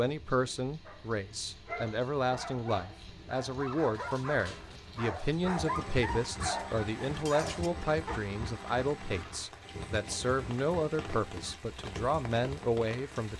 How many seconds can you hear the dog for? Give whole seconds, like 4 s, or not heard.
7 s.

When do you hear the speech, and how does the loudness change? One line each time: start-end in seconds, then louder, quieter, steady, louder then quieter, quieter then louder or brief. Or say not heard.
0.0-13.3 steady.